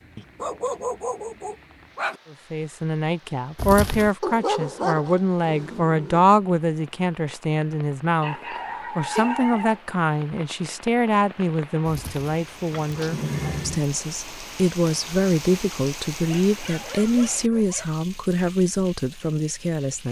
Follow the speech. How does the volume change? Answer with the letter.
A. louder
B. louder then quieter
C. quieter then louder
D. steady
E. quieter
D.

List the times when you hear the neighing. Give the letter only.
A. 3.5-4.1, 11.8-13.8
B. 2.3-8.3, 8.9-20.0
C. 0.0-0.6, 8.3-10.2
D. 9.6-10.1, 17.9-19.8
A.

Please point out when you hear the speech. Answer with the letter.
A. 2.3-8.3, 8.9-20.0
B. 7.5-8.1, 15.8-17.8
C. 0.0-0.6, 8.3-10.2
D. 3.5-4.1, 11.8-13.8
A.